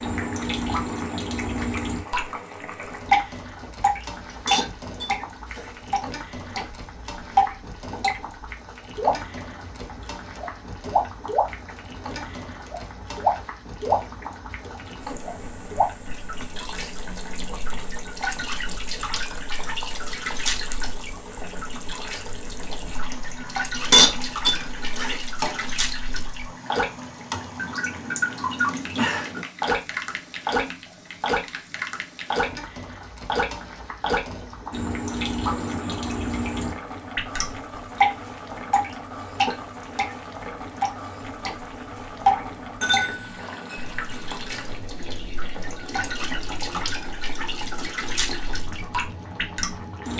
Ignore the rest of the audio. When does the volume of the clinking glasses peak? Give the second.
24 s.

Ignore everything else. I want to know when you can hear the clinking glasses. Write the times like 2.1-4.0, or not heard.
4.3-5.8, 23.7-25.2, 42.3-44.9.